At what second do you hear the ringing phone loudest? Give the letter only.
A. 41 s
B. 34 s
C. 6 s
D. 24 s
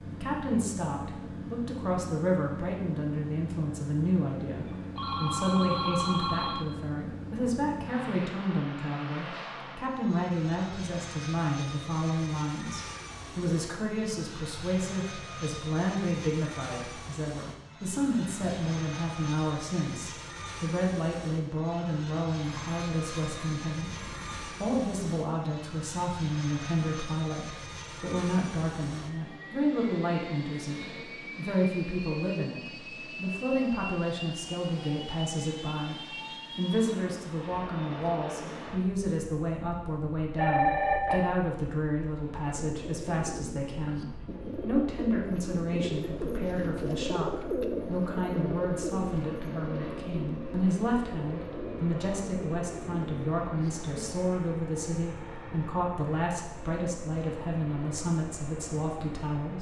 A.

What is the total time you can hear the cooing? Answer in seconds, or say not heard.
12 s.